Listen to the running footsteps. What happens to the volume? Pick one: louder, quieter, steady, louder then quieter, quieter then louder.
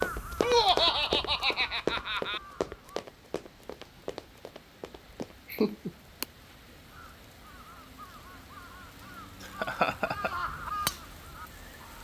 quieter.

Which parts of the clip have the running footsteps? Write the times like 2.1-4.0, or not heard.
0.0-5.8.